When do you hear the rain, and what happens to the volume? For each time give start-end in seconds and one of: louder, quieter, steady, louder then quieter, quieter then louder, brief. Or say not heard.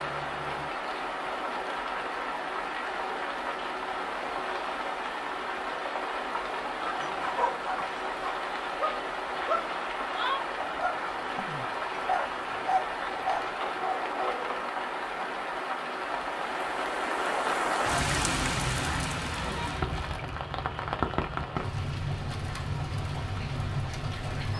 0.0-24.5 steady.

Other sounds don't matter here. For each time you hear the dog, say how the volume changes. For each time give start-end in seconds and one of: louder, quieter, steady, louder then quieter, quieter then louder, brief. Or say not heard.
6.5-14.7 steady.